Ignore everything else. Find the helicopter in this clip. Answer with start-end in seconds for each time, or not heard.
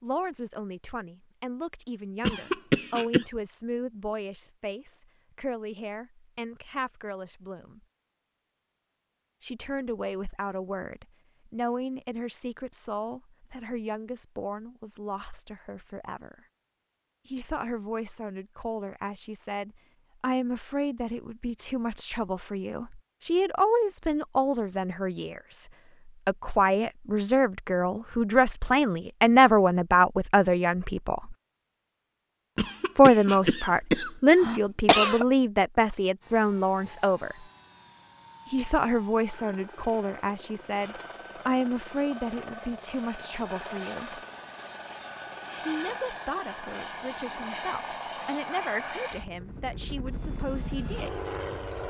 36.2-51.8.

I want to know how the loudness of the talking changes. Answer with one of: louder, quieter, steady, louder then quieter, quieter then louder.
louder then quieter.